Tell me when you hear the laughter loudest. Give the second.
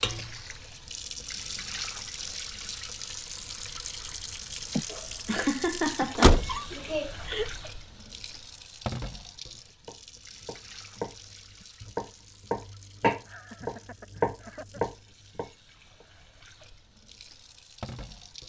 6 s.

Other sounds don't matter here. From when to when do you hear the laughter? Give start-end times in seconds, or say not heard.
4.8-7.5, 13.2-14.8.